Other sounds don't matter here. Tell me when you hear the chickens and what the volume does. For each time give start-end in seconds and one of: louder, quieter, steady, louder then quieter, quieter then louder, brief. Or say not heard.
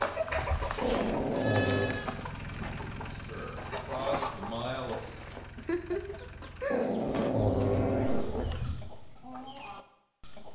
0.0-10.5 quieter.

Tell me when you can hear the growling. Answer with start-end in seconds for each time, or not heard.
0.8-2.0, 6.7-8.5.